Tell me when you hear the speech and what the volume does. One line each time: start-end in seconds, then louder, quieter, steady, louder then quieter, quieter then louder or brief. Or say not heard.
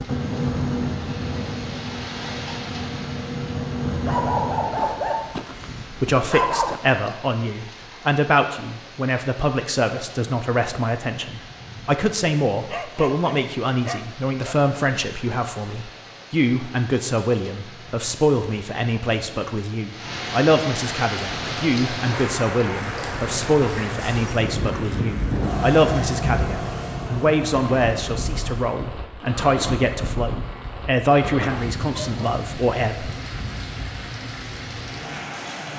6.0-33.1 steady.